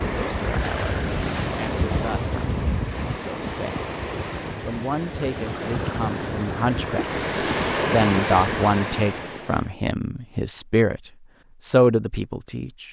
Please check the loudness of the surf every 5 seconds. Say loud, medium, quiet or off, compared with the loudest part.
loud, loud, off.